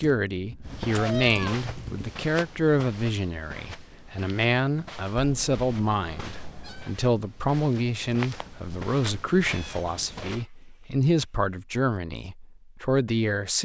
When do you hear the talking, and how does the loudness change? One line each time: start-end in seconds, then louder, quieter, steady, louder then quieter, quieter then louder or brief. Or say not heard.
0.0-13.5 steady.